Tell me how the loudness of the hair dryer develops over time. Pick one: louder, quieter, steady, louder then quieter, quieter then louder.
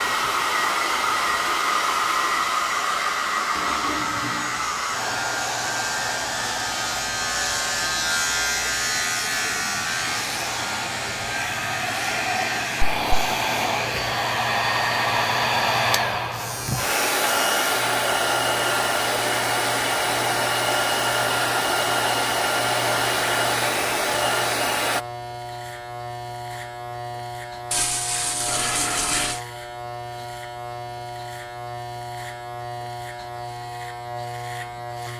quieter then louder.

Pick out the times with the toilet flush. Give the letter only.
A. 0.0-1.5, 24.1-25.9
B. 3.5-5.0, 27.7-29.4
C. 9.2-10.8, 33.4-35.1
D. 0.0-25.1
B.